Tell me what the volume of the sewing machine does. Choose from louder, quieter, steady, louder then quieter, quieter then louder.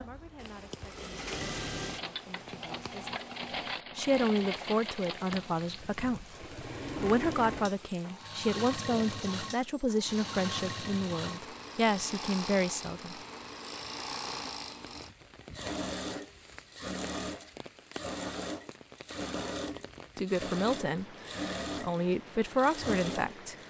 steady.